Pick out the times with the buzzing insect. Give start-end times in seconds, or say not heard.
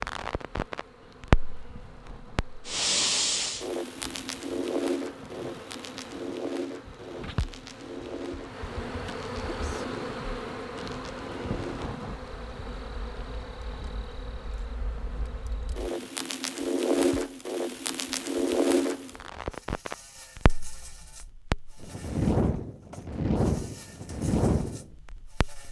0.0-25.6.